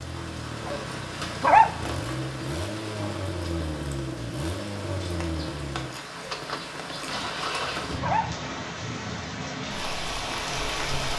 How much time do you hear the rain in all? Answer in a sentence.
The rain can be heard for 11 seconds in total.